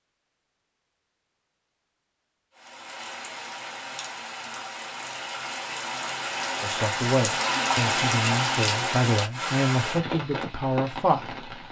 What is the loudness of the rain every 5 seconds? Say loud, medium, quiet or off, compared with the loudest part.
medium, loud, medium.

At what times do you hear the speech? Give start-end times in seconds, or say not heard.
6.6-11.3.